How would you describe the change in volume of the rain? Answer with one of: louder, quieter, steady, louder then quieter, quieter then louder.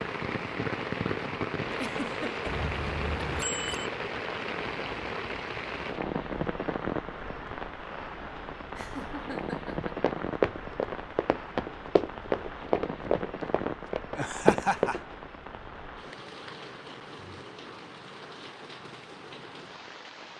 quieter.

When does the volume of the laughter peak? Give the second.
15 s.